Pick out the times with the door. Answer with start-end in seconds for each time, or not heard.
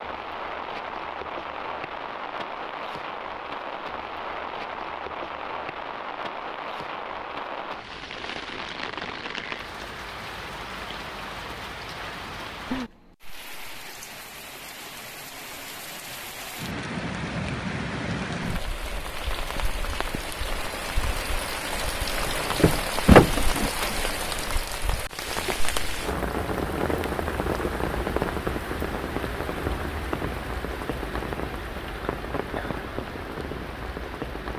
22.1-23.7.